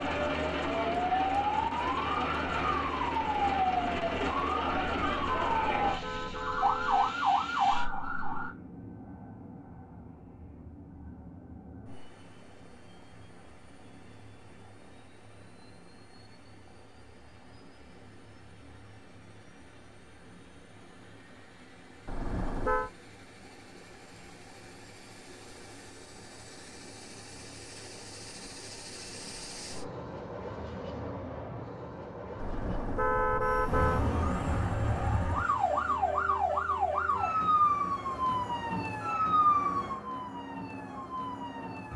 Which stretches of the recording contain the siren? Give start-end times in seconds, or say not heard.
0.0-8.5, 33.6-41.9.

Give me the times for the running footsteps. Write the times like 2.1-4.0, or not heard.
not heard.